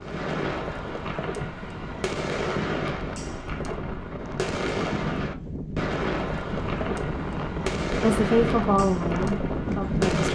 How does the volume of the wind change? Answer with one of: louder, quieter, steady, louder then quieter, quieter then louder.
louder.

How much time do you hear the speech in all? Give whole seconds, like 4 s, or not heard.
2 s.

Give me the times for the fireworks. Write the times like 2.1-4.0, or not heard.
0.0-10.3.